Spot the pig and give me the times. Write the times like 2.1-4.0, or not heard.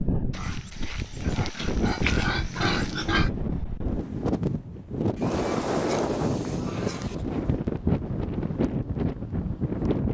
0.3-3.3, 5.2-7.2.